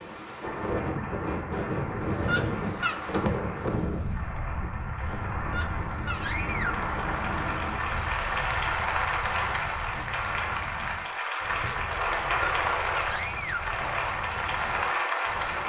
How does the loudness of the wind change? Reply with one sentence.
The loudness of the wind goes down.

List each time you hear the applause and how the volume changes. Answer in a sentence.
You can hear the applause from 0.0 to 15.6 s, getting louder.